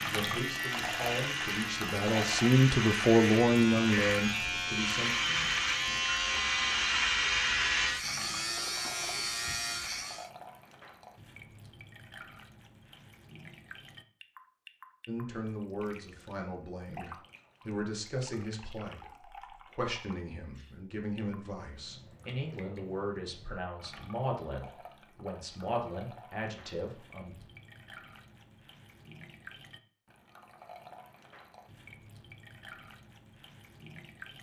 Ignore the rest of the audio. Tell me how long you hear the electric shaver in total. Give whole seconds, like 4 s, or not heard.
10 s.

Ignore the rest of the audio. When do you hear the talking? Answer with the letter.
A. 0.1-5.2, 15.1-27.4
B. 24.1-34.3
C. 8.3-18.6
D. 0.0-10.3
A.